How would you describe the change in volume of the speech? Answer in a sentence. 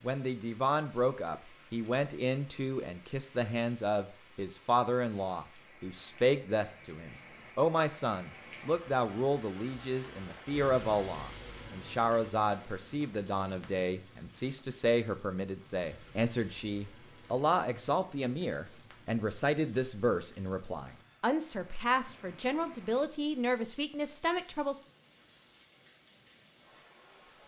The volume of the speech stays about the same.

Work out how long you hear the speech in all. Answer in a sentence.
The speech can be heard for 25 seconds in total.